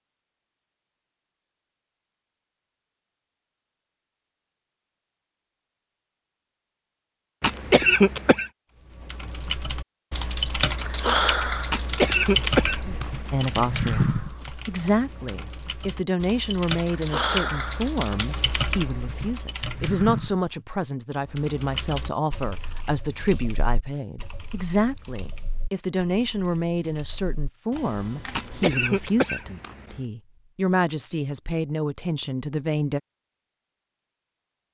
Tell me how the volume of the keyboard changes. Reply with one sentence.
The loudness of the keyboard goes down.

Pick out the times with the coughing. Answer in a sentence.
You can hear the coughing from 7.4 to 8.5 s, from 11.7 to 13.9 s and from 28.4 to 30.0 s.